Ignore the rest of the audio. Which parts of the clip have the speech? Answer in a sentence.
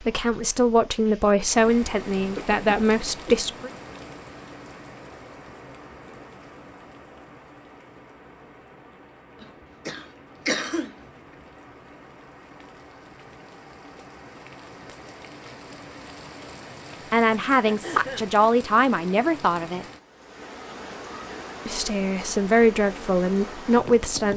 You can hear the speech from 0.0 to 3.7 s, from 17.1 to 19.9 s and from 21.6 to 24.3 s.